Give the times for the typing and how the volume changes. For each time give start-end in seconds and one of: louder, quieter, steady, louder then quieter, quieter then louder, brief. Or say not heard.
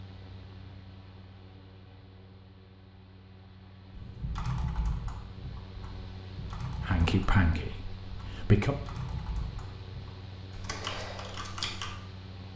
4.0-11.9 quieter then louder.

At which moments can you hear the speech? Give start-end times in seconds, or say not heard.
6.8-8.8.